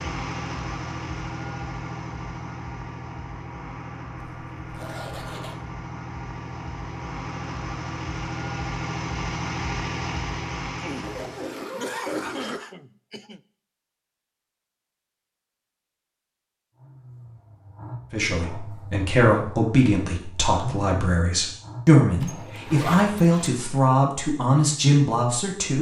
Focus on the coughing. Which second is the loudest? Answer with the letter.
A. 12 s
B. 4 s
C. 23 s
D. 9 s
A.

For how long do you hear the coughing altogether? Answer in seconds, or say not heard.
3 s.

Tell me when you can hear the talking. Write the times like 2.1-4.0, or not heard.
18.1-25.7.